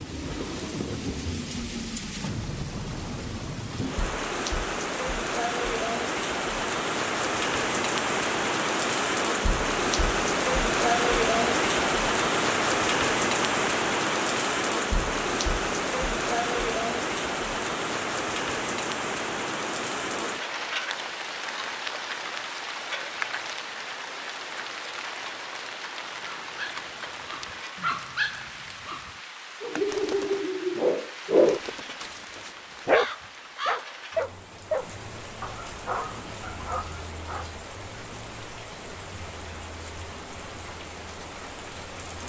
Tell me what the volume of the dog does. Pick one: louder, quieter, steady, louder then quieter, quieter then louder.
louder then quieter.